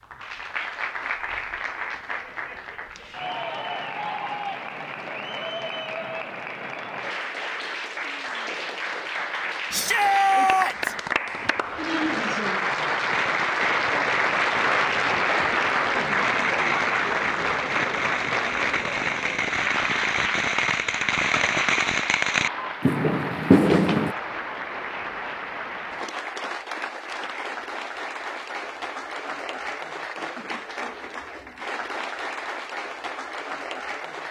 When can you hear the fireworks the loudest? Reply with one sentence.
The loudest moment of the fireworks is at 24 seconds.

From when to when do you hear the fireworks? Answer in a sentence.
You can hear the fireworks from 13.1 to 24.1 s.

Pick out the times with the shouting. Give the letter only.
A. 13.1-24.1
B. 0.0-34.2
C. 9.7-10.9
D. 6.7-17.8
C.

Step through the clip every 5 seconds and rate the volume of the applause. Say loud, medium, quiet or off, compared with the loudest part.
medium, medium, loud, loud, medium, medium, medium.